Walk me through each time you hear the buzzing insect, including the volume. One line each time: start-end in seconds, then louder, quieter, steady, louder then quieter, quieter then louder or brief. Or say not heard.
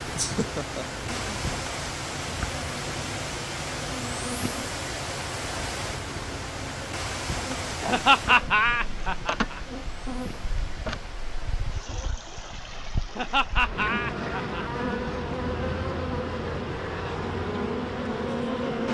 0.0-18.8 louder.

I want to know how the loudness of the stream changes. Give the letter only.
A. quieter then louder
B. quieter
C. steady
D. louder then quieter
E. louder
B.